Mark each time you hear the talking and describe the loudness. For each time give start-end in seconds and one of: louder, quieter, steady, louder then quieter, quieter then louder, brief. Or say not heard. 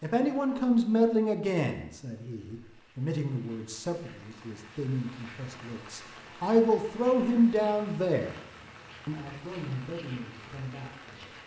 0.0-8.3 quieter then louder
9.1-11.2 brief.